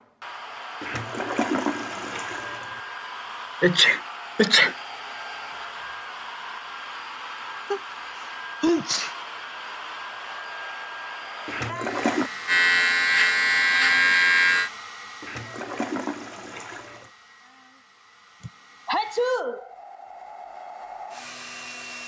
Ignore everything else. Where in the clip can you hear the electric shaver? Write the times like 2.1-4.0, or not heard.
11.7-14.7.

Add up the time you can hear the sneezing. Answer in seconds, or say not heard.
4 s.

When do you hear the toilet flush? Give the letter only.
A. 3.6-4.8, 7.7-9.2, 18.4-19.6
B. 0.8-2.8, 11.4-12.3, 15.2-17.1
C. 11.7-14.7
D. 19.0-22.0
B.